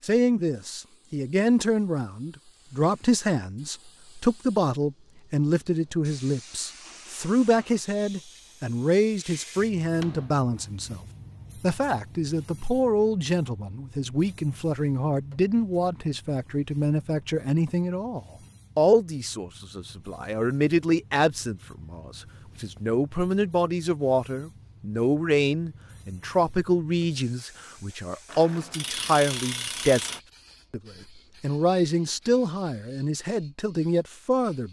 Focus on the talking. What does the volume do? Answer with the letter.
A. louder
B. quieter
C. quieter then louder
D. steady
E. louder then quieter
D.